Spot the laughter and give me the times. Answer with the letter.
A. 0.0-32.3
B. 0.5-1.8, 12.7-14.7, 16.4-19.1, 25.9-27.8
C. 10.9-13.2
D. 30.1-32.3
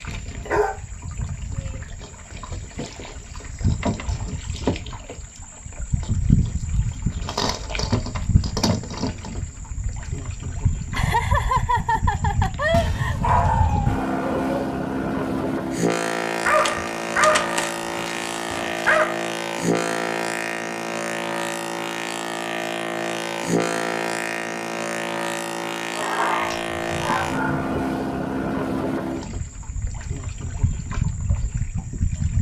C.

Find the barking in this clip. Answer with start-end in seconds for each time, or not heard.
0.5-1.8, 12.7-14.7, 16.4-19.1, 25.9-27.8.